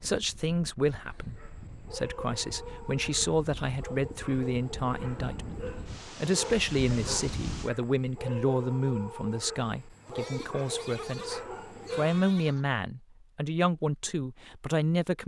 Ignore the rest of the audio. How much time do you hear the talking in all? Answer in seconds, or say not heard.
15 s.